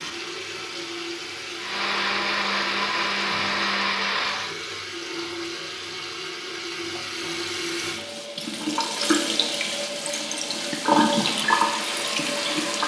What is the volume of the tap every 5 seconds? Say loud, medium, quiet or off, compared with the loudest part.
medium, medium, loud.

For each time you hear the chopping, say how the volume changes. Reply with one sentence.
You can't hear the chopping here.